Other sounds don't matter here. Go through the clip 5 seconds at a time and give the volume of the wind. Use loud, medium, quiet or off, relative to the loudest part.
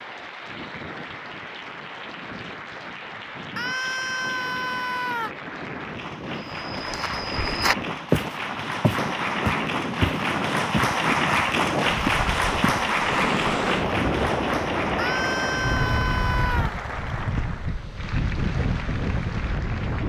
quiet, medium, loud, loud.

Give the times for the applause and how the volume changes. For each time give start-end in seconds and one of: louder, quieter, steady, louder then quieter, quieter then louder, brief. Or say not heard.
0.0-20.0 louder then quieter.